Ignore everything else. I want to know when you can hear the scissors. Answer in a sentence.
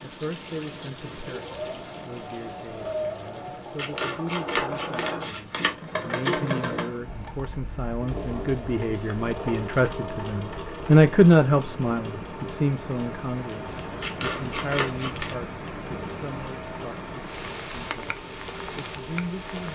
The scissors can be heard from 3.8 to 5.8 s and from 14.0 to 15.3 s.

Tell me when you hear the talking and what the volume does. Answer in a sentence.
You can hear the talking from 0.0 to 18.1 s, getting louder then quieter; and briefly from 18.8 to 19.6 s.